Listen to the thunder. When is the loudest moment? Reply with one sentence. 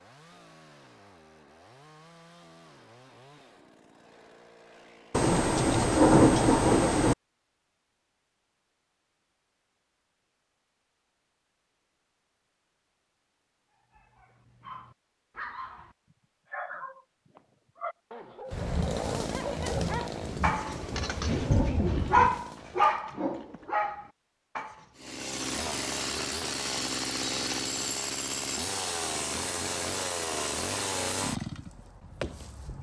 The loudest moment of the thunder is at 6 seconds.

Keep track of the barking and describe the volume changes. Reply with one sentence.
The loudness of the barking goes up.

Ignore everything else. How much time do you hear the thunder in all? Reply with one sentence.
The thunder can be heard for 6 seconds in total.